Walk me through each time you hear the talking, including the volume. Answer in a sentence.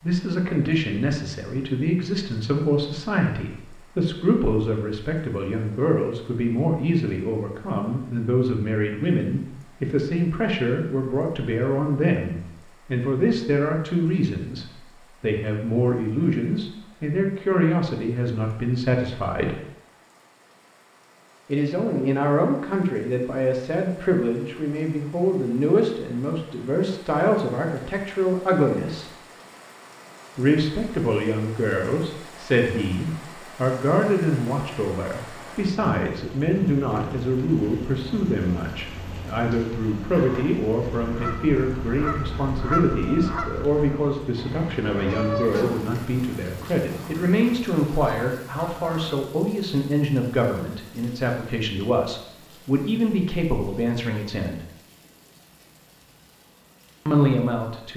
The talking can be heard from 0.0 to 19.6 s, at a steady volume; from 21.4 to 29.1 s, at a steady volume; from 30.4 to 54.6 s, at a steady volume; and briefly from 57.0 to 57.9 s.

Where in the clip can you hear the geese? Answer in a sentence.
You can hear the geese from 40.1 to 49.1 s.